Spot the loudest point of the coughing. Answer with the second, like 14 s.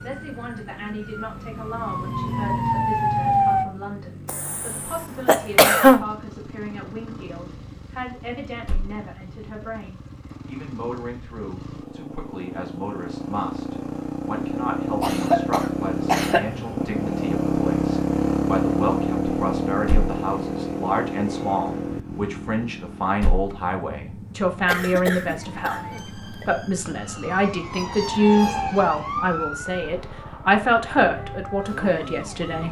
6 s.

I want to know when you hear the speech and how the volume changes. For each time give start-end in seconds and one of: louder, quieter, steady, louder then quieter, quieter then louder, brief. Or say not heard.
0.0-32.6 louder.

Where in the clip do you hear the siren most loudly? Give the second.
3 s.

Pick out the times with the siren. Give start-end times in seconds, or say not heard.
0.0-3.6, 25.4-32.6.